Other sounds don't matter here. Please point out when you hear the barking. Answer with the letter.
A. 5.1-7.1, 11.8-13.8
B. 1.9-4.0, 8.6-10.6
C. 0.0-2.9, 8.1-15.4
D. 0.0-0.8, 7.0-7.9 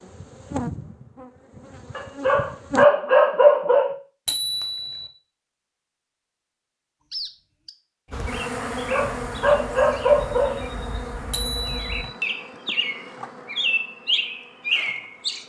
B.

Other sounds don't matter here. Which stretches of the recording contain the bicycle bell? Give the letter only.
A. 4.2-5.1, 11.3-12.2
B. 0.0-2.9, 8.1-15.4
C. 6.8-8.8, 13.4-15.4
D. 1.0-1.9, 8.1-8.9
A.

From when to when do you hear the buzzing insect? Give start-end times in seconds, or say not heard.
0.0-2.9, 8.1-15.4.